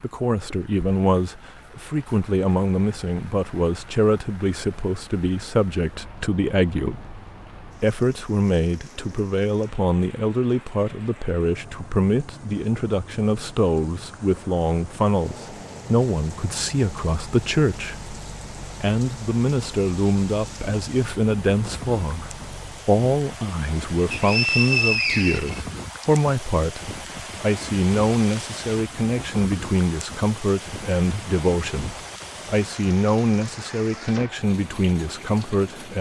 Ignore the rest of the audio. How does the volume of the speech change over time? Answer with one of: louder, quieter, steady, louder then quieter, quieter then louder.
steady.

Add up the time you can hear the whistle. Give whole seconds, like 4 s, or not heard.
2 s.